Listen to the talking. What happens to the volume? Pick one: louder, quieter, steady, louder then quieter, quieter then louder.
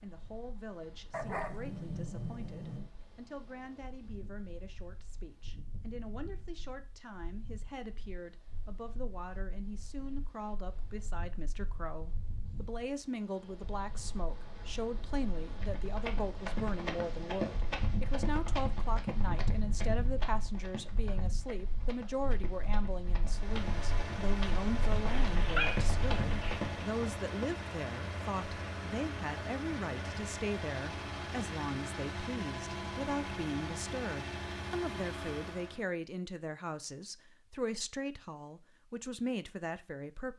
louder.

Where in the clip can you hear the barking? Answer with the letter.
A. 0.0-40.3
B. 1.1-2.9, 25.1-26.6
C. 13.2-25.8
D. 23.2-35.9
B.